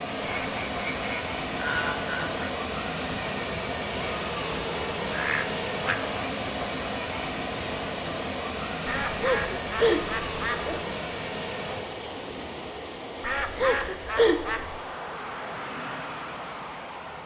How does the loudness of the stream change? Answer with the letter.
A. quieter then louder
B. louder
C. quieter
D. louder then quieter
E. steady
C.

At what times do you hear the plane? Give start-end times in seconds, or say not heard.
11.8-17.2.